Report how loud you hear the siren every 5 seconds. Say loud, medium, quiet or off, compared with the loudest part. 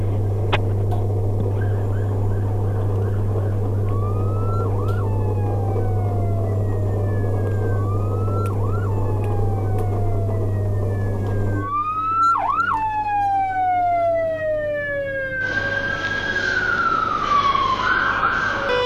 quiet, quiet, loud, loud.